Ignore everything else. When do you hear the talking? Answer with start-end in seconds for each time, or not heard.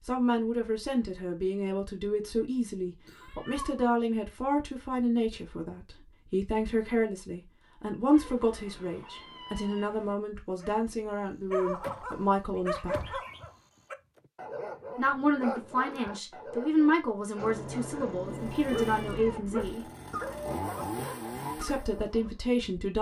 0.1-13.2, 14.9-19.9, 21.6-22.9.